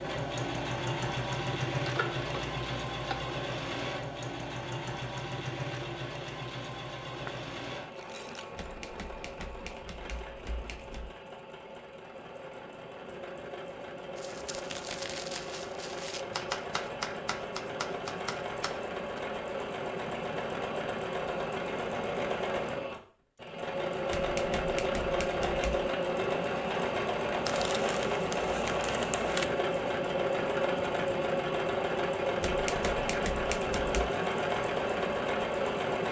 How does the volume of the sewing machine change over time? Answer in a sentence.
The loudness of the sewing machine goes down, then up.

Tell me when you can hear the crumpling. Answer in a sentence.
The crumpling can be heard from 7.2 to 8.7 s, from 14.2 to 16.2 s and from 27.4 to 29.4 s.